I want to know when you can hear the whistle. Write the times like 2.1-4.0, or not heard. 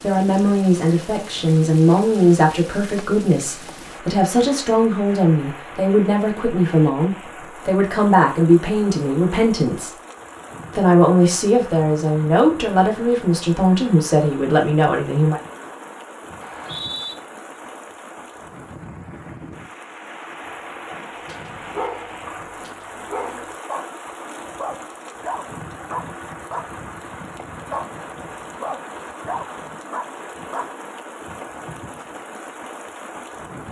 16.4-17.1.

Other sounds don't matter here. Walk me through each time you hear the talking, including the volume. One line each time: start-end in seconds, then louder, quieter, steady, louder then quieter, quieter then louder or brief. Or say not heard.
0.0-9.9 steady
10.7-15.4 steady.